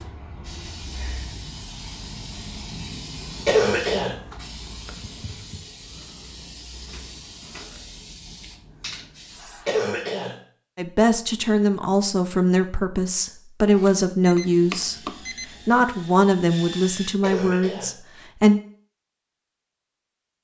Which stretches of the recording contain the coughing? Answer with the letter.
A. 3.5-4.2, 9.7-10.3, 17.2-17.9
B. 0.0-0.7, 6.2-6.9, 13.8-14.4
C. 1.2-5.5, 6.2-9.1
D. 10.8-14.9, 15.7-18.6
A.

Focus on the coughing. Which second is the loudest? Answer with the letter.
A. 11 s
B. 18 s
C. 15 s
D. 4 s
D.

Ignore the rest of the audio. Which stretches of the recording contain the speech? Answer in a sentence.
The speech can be heard from 10.8 to 14.9 s and from 15.7 to 18.6 s.